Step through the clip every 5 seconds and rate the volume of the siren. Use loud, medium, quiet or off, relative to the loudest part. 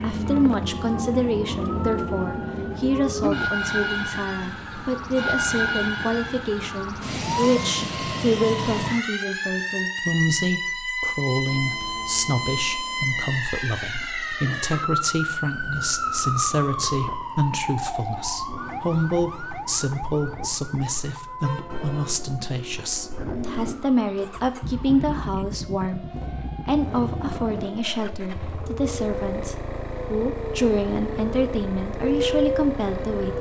loud, loud, loud, loud, quiet, quiet, loud.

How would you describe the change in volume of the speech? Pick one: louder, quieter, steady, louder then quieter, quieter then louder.
steady.